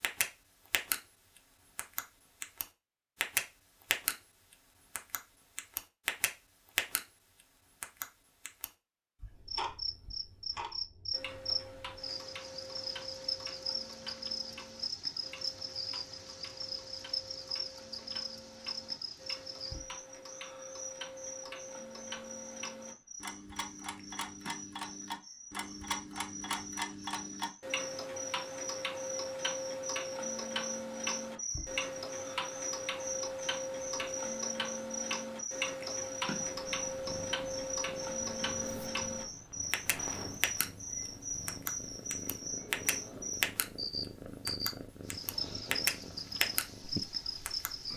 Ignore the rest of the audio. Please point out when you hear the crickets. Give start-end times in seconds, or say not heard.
9.3-47.9.